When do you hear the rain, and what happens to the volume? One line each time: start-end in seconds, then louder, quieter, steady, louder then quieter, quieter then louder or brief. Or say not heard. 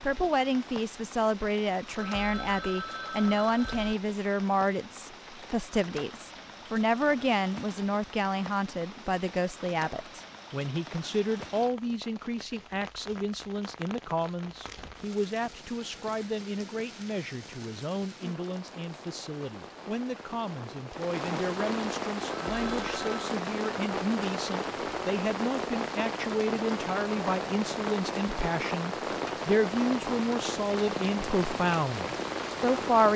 0.0-33.1 louder.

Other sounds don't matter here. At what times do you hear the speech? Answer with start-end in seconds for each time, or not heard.
0.0-33.1.